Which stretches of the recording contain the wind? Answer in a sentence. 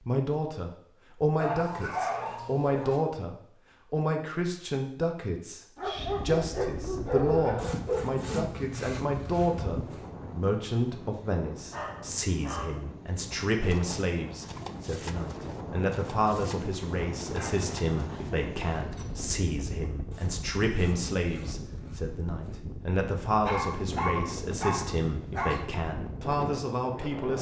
You can hear the wind from 6.0 to 27.3 s.